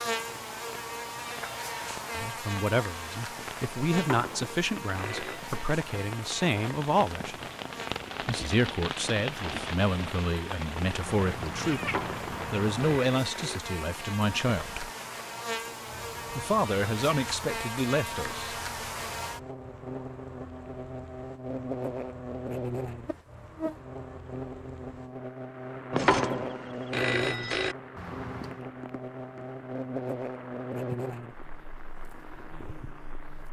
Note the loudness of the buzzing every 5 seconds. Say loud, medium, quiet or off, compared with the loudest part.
loud, medium, medium, loud, loud, loud, loud.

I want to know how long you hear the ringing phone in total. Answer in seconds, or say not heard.
5 s.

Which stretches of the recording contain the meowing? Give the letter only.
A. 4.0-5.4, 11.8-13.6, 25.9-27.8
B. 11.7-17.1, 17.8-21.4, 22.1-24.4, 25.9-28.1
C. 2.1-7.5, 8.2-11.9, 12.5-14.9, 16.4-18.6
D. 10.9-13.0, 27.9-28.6
D.